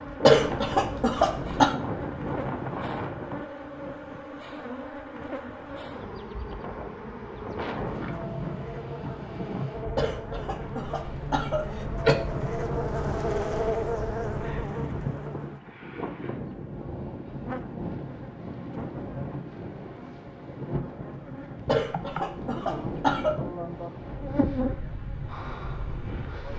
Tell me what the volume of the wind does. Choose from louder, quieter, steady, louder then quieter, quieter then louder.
steady.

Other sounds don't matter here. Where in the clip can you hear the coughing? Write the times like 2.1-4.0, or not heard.
0.2-1.8, 9.9-12.2, 21.6-23.4.